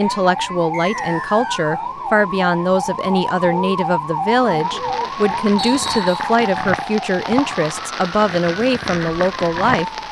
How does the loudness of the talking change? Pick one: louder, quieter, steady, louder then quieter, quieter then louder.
steady.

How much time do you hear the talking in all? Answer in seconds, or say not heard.
10 s.